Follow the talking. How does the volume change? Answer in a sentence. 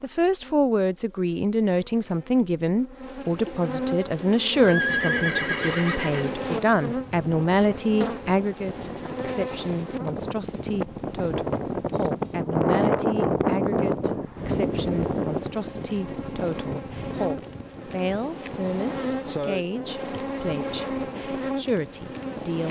The loudness of the talking goes down.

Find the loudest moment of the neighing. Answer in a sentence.
The volume of the neighing peaks at 5 seconds.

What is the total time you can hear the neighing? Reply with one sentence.
You can hear the neighing for 2 seconds altogether.